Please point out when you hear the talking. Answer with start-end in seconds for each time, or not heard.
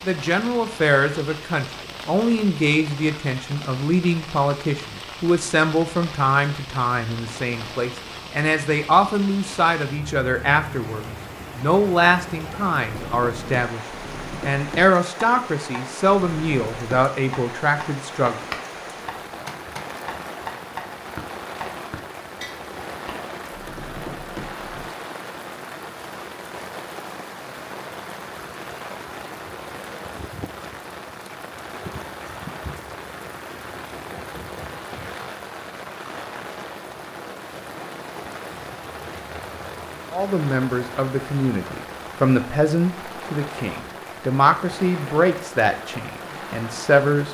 0.0-13.8, 14.4-18.4, 40.1-47.2.